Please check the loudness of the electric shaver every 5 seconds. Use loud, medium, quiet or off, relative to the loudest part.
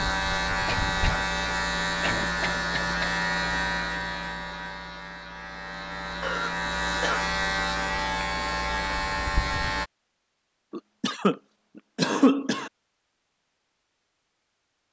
loud, loud, off.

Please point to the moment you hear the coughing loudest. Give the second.
12 s.